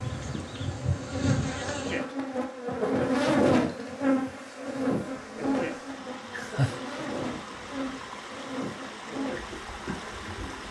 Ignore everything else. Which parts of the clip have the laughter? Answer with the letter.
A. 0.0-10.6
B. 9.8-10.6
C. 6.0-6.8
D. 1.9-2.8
C.